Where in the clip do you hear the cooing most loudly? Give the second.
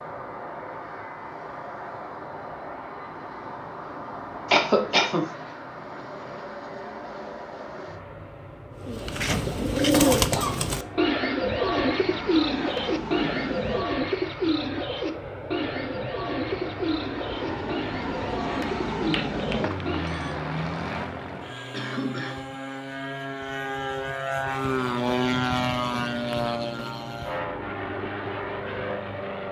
10 s.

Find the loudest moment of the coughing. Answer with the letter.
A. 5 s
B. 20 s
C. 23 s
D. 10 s
A.